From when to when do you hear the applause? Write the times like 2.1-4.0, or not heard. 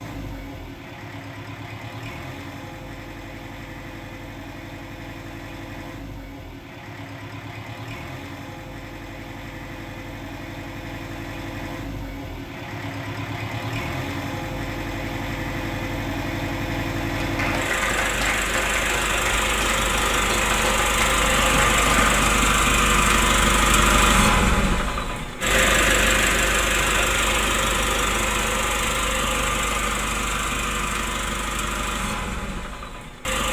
17.2-22.4.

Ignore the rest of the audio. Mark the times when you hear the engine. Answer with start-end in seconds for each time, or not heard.
0.0-33.4.